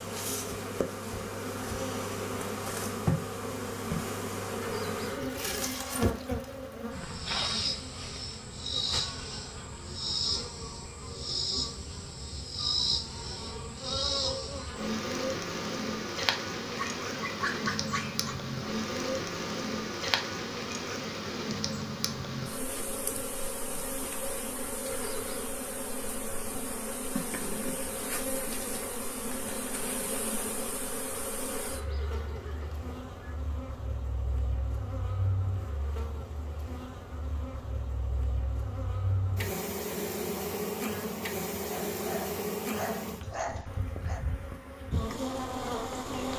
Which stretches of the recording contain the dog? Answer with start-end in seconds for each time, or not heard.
16.8-18.4, 41.6-44.2.